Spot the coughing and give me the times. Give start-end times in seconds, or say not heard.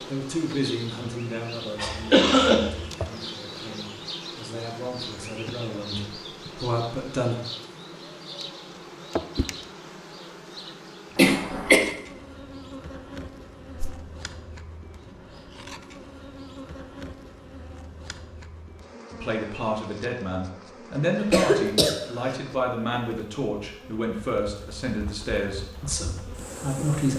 1.8-2.9, 11.2-11.8, 21.1-22.3.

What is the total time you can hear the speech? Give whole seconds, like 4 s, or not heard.
15 s.